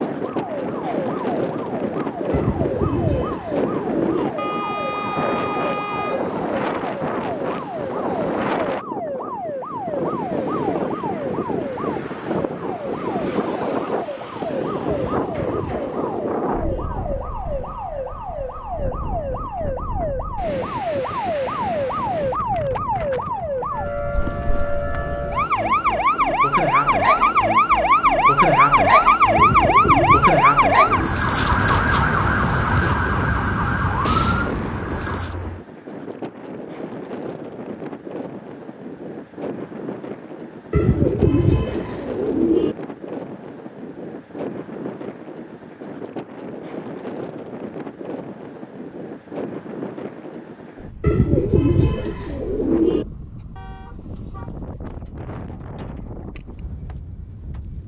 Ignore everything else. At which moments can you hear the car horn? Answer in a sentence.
You can hear the car horn from 4.3 to 6.3 s, from 35.1 to 35.6 s and from 53.5 to 54.5 s.